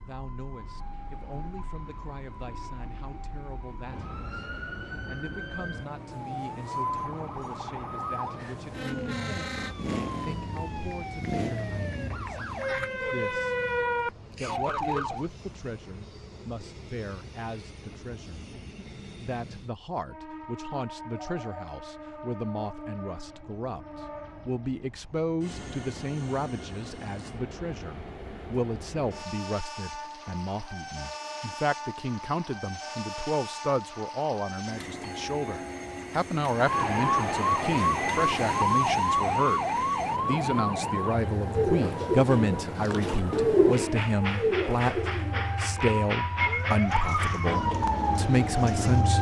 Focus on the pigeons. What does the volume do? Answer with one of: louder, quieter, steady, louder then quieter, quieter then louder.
louder then quieter.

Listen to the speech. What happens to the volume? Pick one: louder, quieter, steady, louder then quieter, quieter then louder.
louder.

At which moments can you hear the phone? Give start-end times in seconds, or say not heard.
21.1-21.8.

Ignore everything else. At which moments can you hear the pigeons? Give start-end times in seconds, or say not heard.
41.5-49.1.